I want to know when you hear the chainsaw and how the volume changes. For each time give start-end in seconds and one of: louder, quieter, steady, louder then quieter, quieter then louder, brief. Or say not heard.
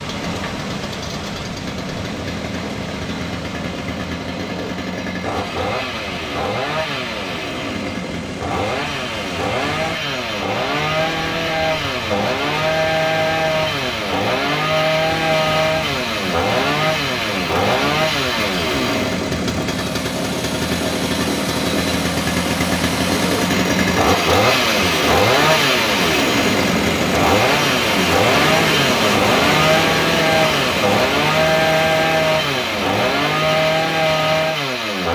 0.0-35.1 louder.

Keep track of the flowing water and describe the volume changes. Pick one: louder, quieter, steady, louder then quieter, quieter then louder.
louder.